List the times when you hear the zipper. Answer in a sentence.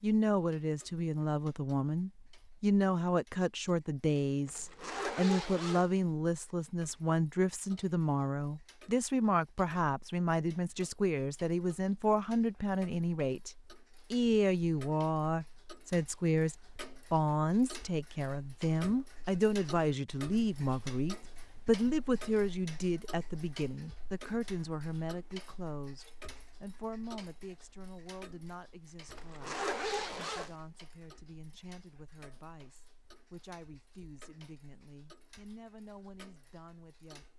You can hear the zipper from 4.5 to 5.9 s and from 29.1 to 30.6 s.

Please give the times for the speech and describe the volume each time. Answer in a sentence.
The speech can be heard from 0.0 to 37.2 s, getting quieter.